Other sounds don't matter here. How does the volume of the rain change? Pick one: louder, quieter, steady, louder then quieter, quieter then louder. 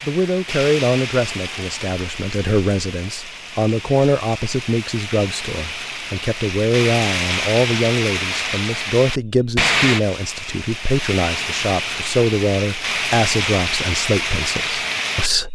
louder.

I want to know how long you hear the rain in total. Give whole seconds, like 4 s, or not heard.
15 s.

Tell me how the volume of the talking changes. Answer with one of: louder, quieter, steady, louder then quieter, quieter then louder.
steady.